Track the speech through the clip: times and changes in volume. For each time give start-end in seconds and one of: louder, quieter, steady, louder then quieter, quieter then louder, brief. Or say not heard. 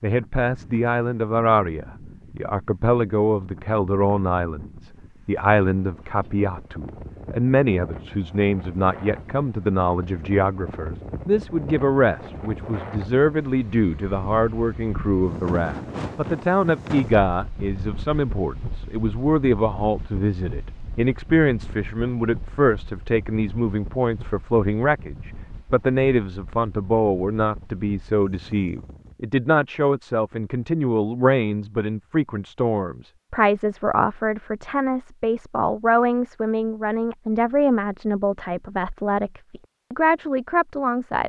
0.0-41.2 steady.